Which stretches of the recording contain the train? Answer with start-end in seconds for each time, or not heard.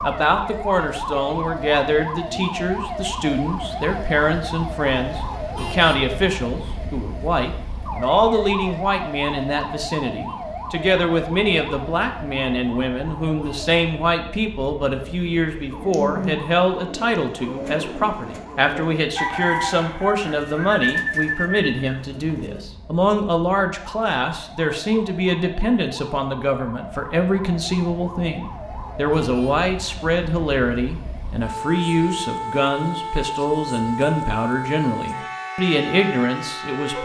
not heard.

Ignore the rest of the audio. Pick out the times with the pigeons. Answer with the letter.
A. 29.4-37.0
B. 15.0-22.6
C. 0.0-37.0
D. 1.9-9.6
B.